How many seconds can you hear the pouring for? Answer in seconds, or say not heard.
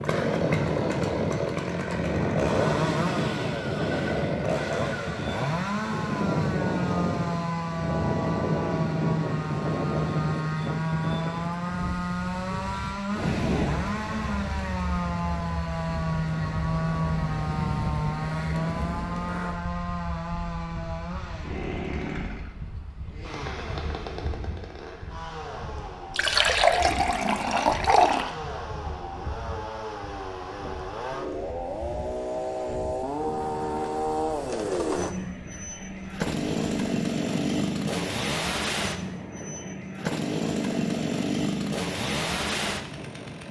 2 s.